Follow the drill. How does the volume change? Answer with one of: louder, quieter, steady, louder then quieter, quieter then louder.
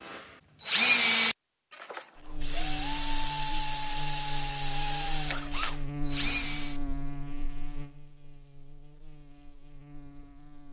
quieter.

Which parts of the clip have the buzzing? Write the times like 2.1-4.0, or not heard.
2.1-10.6.